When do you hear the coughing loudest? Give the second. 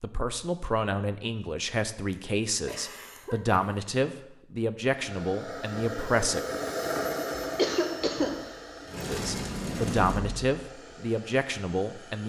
8 s.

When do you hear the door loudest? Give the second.
10 s.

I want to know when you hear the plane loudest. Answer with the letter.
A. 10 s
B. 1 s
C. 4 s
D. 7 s
D.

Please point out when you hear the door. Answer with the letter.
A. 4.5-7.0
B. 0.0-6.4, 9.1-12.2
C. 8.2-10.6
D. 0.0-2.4
C.